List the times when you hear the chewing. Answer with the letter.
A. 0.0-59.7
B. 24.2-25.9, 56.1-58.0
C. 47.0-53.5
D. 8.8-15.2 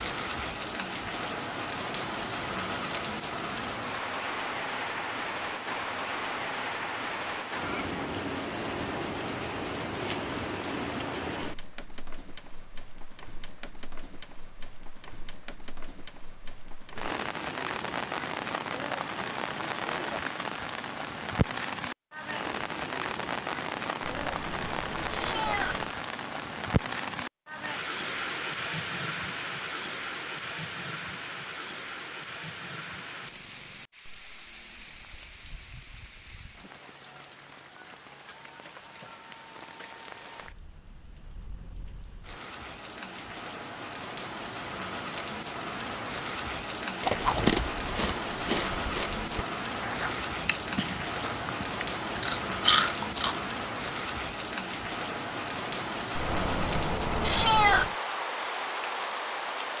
C.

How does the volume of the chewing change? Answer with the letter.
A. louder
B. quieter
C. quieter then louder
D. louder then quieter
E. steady
C.